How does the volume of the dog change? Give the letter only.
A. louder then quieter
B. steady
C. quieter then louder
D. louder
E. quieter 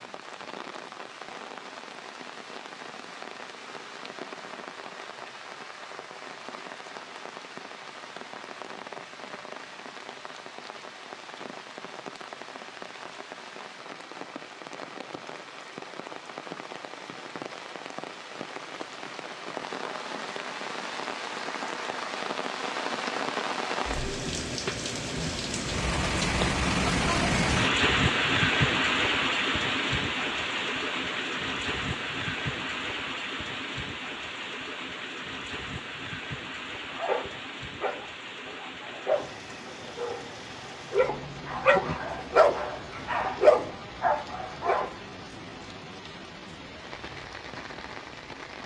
D.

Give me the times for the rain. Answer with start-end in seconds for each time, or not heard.
0.0-48.6.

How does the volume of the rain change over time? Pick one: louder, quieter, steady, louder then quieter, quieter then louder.
louder then quieter.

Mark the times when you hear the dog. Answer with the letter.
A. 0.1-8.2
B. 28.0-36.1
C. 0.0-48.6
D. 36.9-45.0
D.